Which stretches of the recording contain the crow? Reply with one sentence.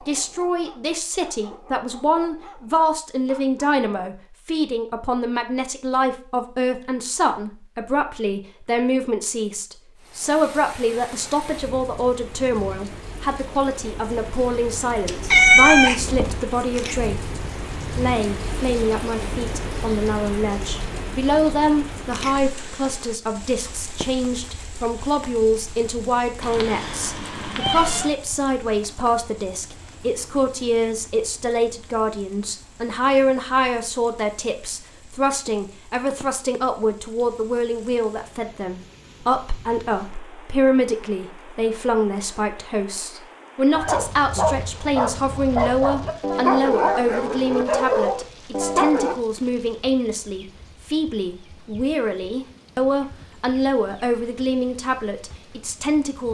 The crow can't be heard in this clip.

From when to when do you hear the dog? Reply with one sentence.
You can hear the dog from 0.0 to 4.1 s and from 43.7 to 49.1 s.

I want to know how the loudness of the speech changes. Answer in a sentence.
The loudness of the speech stays about the same.